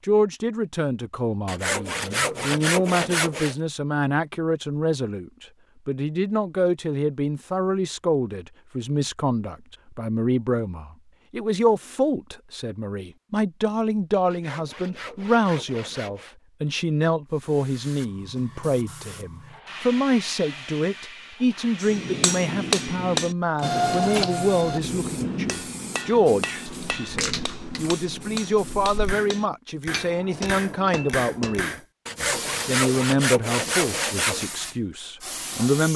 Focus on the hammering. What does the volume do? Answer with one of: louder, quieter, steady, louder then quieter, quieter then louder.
quieter.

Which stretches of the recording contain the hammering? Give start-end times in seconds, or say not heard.
21.8-31.8.